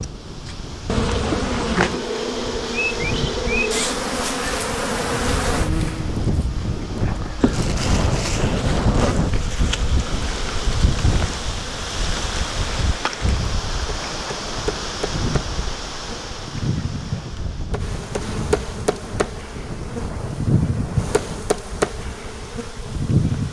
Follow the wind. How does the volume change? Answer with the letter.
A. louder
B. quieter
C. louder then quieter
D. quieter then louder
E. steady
C.